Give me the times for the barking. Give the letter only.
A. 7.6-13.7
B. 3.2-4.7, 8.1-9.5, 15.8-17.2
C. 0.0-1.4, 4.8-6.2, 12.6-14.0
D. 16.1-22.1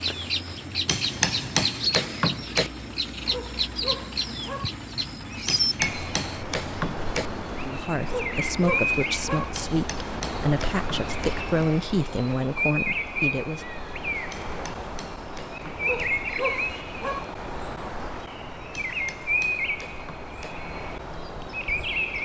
B.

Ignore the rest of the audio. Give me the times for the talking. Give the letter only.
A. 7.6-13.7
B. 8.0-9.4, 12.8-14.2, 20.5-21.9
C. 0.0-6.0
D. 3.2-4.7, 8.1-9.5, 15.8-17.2
A.